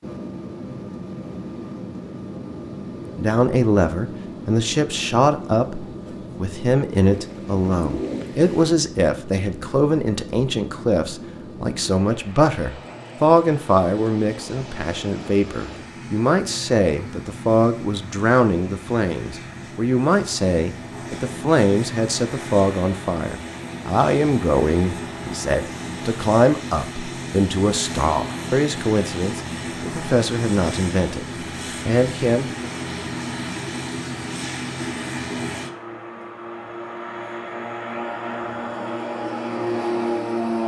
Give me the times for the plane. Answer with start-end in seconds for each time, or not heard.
0.0-40.6.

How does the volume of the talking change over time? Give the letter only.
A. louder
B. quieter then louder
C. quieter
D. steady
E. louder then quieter
D.